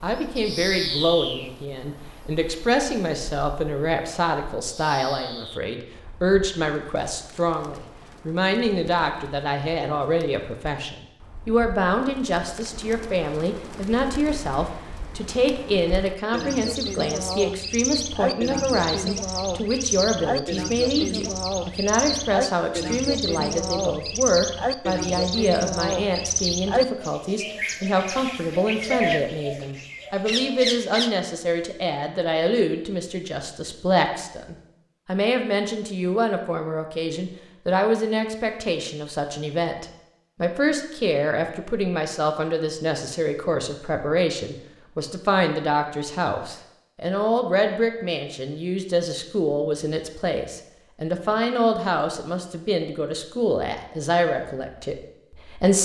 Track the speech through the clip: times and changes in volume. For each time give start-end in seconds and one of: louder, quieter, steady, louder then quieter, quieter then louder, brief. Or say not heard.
0.0-55.8 steady.